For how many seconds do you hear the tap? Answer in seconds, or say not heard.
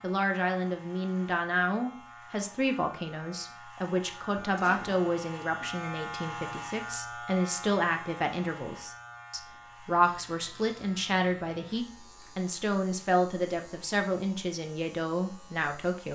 not heard.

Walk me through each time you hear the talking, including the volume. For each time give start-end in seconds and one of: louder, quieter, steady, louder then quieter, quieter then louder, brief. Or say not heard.
0.0-16.0 steady.